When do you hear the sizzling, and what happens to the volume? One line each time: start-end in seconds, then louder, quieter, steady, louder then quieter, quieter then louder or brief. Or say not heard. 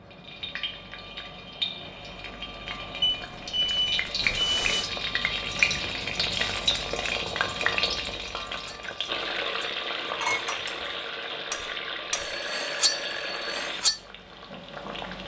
0.0-15.2 louder then quieter.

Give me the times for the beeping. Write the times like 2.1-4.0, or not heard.
3.0-4.9, 12.1-13.7.